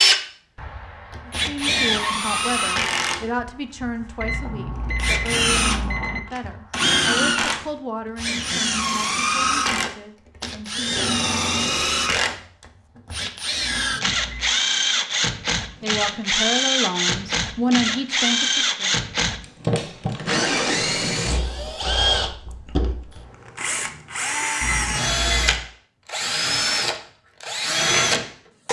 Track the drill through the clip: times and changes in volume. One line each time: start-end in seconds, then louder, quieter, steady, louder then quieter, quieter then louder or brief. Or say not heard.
0.0-28.6 steady.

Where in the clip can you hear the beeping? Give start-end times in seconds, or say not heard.
4.2-6.2, 13.6-14.5, 24.6-25.6.